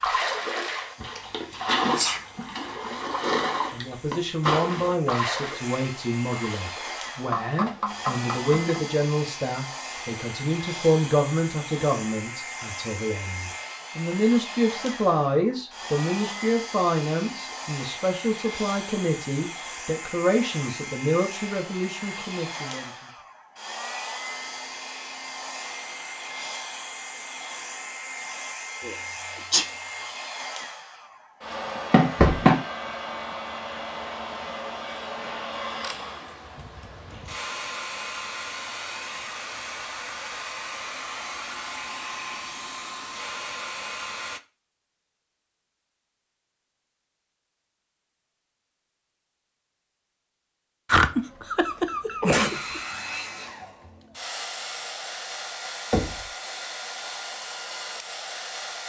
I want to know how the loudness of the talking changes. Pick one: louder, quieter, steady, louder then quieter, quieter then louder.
steady.